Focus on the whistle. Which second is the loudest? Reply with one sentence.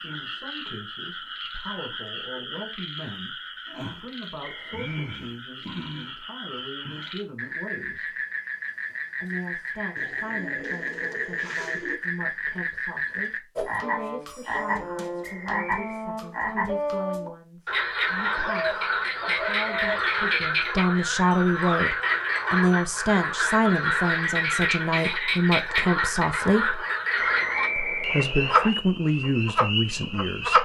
The volume of the whistle peaks at 28 seconds.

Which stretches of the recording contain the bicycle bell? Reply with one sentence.
The bicycle bell can't be heard in this clip.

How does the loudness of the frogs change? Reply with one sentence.
The volume of the frogs goes up.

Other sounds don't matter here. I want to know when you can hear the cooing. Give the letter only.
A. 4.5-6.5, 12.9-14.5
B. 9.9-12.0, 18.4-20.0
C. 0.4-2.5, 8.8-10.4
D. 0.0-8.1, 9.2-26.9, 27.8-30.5
B.